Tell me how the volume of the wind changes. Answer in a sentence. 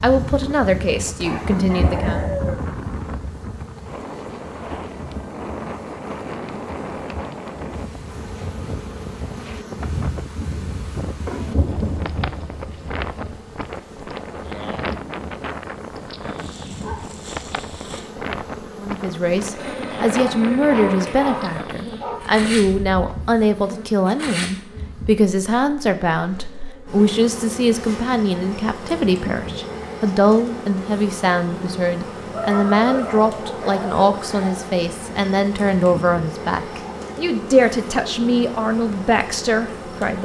The loudness of the wind stays about the same.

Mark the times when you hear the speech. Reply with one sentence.
You can hear the speech from 0.0 to 2.2 s and from 18.8 to 40.2 s.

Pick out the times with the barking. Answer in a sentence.
You can hear the barking from 1.2 to 2.6 s, from 16.2 to 18.0 s, from 20.1 to 22.2 s and from 32.3 to 34.0 s.